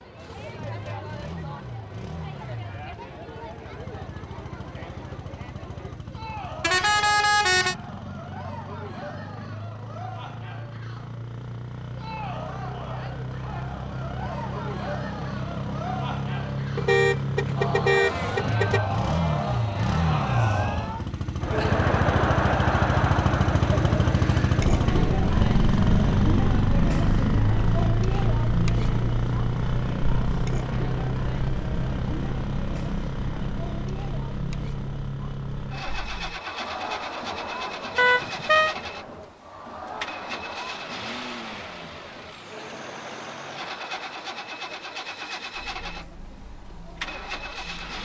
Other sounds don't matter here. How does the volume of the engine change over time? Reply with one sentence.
The volume of the engine goes up, then down.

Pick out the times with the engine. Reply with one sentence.
You can hear the engine from 0.0 to 48.0 s.